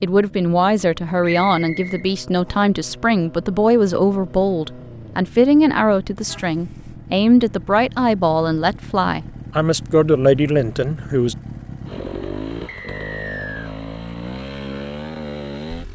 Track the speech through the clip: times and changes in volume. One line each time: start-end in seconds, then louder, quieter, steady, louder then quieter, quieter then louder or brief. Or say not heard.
0.0-11.3 steady.